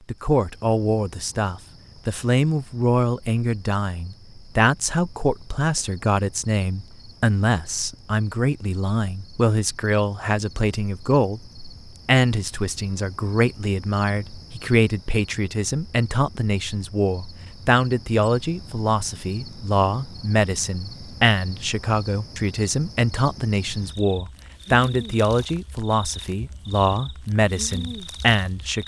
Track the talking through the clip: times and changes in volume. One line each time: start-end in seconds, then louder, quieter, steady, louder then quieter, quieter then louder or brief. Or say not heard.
0.1-28.8 steady.